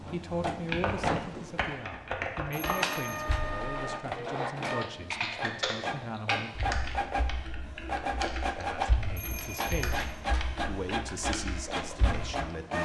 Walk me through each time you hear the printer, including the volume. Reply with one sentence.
You can hear the printer from 0.0 to 12.7 s, at a steady volume.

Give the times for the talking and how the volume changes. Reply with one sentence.
The talking can be heard from 0.1 to 6.5 s, getting quieter; briefly from 8.6 to 10.0 s; and briefly from 10.7 to 12.7 s.